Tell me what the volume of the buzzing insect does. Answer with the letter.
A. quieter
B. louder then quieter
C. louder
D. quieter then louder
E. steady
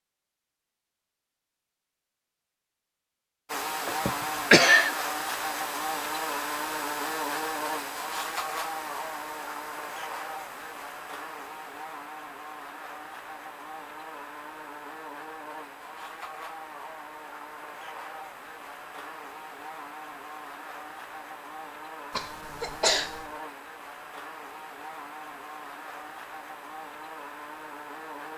A.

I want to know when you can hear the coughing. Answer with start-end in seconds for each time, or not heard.
3.9-4.9, 22.1-23.2.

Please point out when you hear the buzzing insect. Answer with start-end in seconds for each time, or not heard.
3.5-28.3.